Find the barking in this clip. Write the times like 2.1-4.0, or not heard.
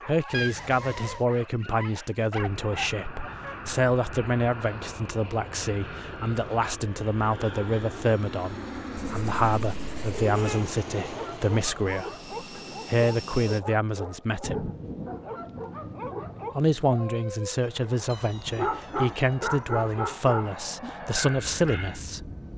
0.0-3.8, 11.0-22.0.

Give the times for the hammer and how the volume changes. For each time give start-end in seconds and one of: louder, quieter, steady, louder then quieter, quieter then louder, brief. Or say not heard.
not heard.